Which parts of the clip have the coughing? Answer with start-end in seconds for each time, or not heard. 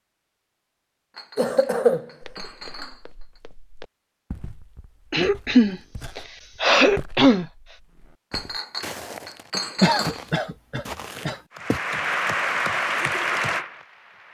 1.4-2.0, 5.1-7.5, 9.8-11.3.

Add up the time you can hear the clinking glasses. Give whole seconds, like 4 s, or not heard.
4 s.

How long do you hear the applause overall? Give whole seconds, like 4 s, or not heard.
3 s.